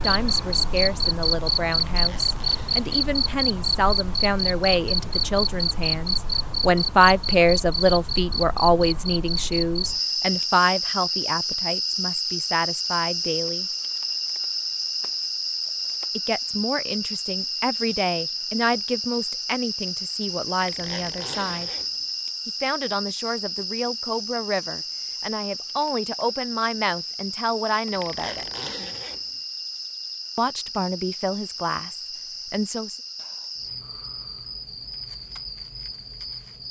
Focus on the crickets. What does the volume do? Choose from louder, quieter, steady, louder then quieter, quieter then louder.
quieter.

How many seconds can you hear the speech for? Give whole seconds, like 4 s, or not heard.
28 s.